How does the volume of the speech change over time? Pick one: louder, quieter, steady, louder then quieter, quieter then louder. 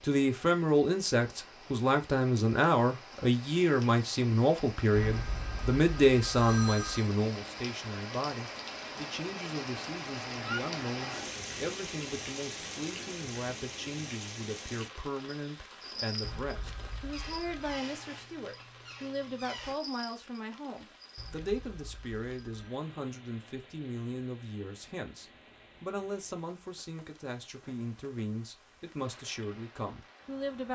quieter.